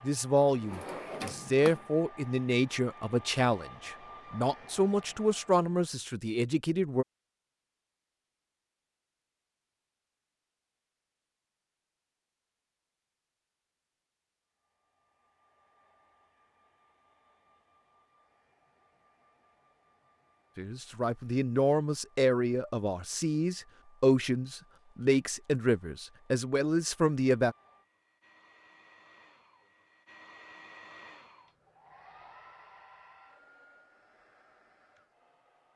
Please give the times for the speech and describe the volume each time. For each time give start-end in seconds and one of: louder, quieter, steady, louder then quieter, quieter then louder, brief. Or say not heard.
0.0-7.0 steady
20.6-27.6 steady.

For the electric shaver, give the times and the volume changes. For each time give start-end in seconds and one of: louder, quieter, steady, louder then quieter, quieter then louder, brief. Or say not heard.
not heard.